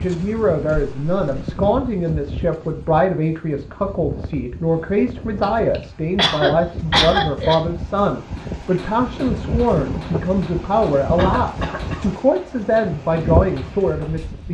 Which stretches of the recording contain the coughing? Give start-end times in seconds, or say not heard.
0.7-1.7, 5.4-7.5, 11.2-12.1.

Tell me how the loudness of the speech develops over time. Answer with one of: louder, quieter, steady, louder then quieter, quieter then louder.
steady.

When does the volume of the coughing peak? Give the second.
7 s.